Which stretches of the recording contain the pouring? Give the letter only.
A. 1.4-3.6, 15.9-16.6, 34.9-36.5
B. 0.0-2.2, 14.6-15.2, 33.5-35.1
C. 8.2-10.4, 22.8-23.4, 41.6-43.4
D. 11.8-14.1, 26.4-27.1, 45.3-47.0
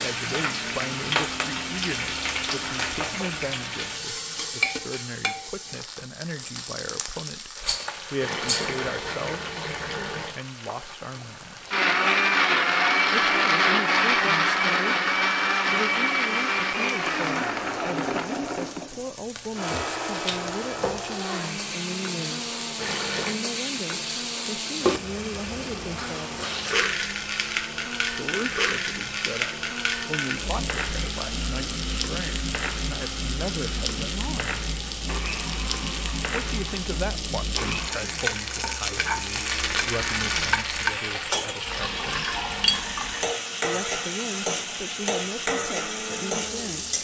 C.